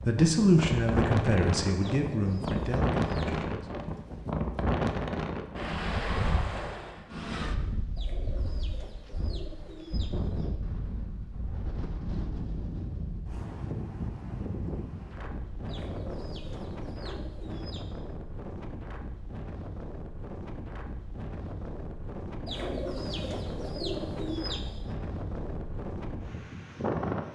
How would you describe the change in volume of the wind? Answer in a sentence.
The volume of the wind goes down.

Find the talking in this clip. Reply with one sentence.
The talking can be heard from 0.1 to 3.6 s.